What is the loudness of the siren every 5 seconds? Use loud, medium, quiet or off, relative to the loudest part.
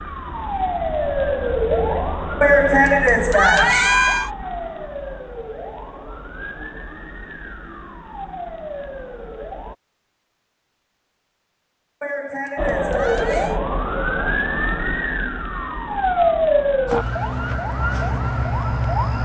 loud, quiet, loud, loud.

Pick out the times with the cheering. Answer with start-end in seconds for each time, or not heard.
2.4-4.3, 12.0-13.6.